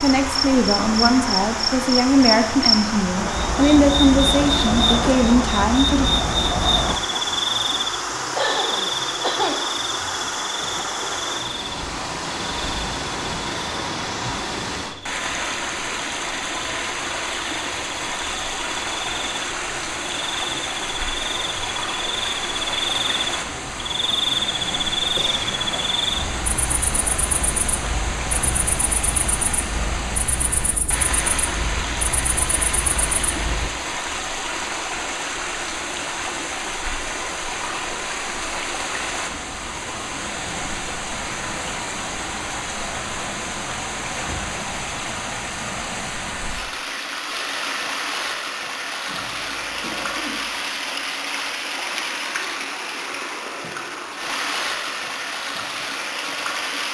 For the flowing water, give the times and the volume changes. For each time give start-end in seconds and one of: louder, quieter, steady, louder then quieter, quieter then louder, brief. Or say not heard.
0.0-56.8 steady.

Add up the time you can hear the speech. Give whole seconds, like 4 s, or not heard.
6 s.